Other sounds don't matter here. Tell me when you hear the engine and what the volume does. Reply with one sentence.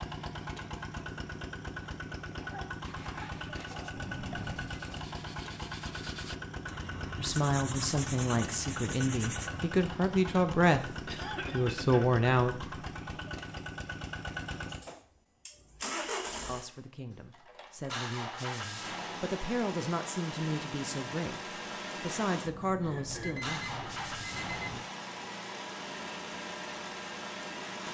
You can hear the engine from 0.0 to 27.8 s, at a steady volume.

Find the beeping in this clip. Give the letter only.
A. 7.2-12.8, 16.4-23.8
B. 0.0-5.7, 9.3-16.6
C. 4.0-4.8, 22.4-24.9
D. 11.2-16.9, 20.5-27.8
C.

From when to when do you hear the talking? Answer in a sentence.
You can hear the talking from 7.2 to 12.8 s and from 16.4 to 23.8 s.